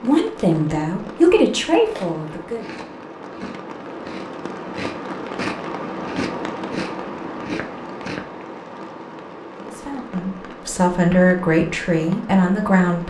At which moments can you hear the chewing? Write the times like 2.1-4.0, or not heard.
1.9-8.4.